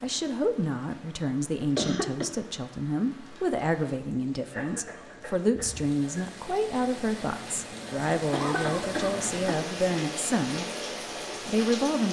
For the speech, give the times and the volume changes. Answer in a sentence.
You can hear the speech from 0.0 to 10.7 s, at a steady volume; and briefly from 11.4 to 12.0 s.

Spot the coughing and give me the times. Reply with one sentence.
You can hear the coughing from 1.8 to 2.3 s, from 4.5 to 6.2 s and from 8.3 to 9.7 s.